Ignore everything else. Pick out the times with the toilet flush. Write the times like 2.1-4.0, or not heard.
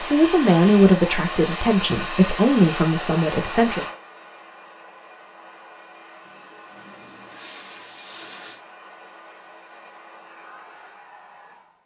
6.2-8.6.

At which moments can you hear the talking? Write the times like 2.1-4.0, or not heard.
0.0-3.9.